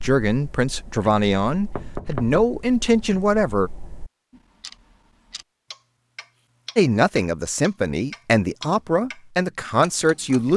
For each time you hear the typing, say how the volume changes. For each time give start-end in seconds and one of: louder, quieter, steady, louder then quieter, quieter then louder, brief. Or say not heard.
not heard.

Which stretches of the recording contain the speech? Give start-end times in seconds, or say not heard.
0.0-3.7, 6.8-10.5.